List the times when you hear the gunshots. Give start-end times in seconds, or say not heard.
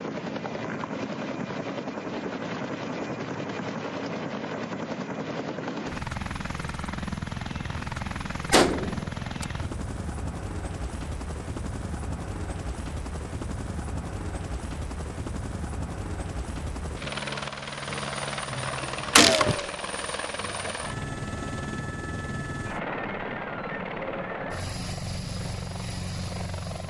8.5-9.4, 19.1-19.7.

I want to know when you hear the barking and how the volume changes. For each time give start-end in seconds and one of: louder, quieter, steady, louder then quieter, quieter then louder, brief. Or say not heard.
not heard.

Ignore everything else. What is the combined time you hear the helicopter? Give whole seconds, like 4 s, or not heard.
27 s.